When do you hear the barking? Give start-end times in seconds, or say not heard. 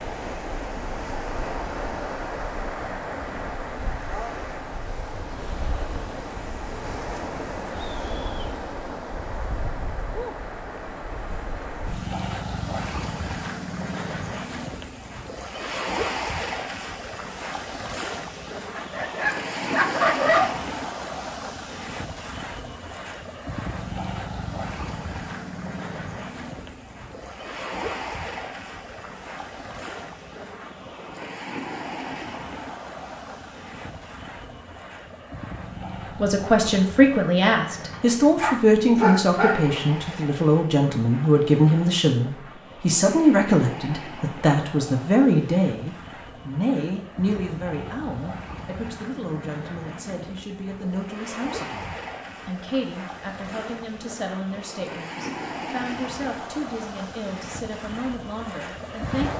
18.8-20.5, 37.9-39.6.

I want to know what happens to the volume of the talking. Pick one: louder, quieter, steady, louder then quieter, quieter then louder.
quieter.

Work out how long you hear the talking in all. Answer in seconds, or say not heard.
23 s.